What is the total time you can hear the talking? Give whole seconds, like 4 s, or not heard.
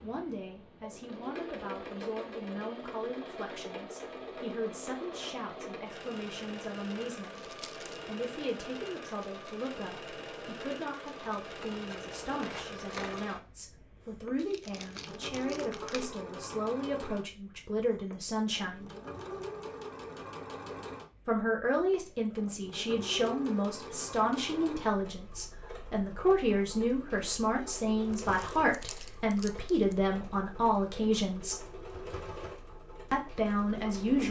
30 s.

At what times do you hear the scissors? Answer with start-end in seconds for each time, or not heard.
11.4-13.5.